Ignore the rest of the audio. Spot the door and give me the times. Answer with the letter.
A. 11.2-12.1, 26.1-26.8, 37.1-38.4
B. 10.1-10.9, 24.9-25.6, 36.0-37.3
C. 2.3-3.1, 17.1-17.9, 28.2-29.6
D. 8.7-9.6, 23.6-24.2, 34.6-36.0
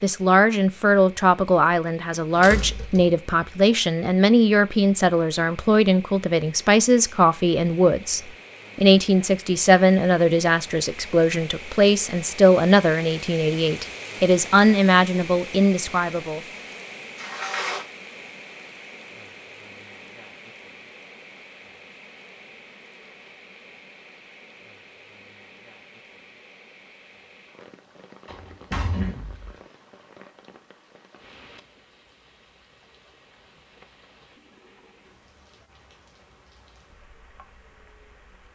C.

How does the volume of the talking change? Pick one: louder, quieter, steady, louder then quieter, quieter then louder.
steady.